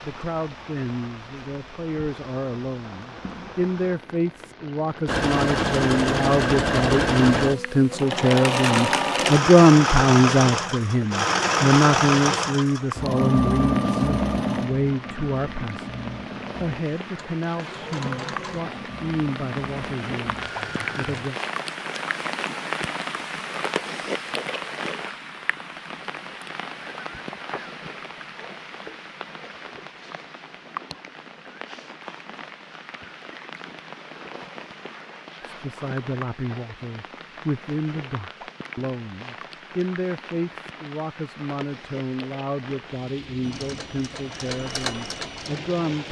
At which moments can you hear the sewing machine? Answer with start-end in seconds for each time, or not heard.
5.0-21.3, 43.4-46.0.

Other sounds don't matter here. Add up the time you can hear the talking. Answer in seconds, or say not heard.
32 s.